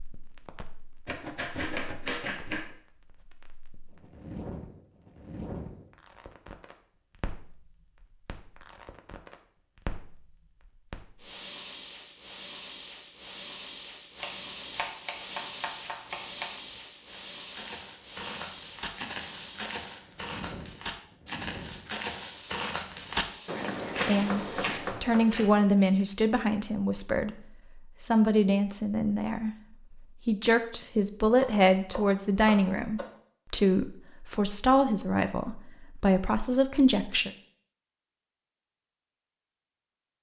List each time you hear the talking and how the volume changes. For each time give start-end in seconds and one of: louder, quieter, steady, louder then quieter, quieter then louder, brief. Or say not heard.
24.1-37.3 steady.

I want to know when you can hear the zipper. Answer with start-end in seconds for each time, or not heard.
not heard.